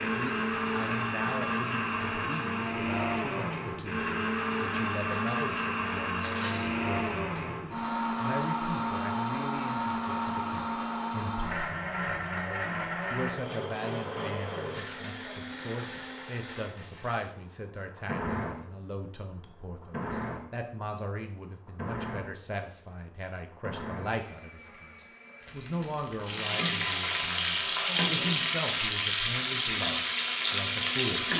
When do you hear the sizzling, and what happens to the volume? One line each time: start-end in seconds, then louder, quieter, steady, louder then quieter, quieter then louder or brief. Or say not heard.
26.2-31.3 steady.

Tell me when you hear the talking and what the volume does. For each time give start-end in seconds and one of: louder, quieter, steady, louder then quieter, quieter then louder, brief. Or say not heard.
0.0-31.3 steady.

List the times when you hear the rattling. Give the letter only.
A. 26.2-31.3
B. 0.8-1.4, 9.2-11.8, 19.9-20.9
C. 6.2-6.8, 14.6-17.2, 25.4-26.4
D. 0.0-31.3
C.